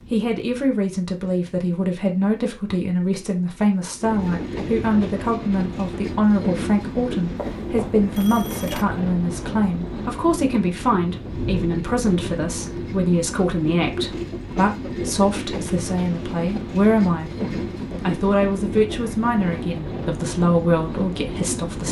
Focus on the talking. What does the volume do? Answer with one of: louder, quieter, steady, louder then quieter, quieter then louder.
steady.